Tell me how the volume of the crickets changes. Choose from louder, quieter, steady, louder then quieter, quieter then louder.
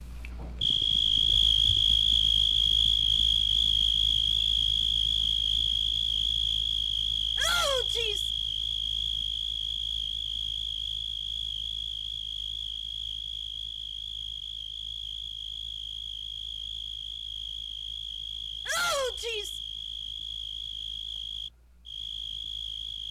quieter.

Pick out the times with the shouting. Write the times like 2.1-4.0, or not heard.
7.3-8.3, 18.6-19.6.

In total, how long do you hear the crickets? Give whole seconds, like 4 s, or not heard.
23 s.